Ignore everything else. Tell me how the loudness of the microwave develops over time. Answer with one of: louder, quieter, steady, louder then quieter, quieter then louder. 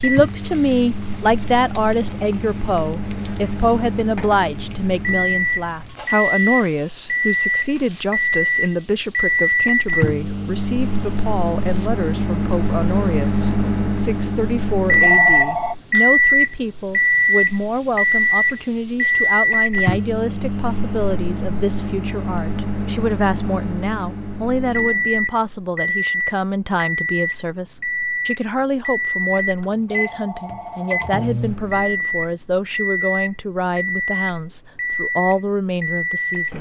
louder then quieter.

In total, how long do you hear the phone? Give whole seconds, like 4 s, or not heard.
2 s.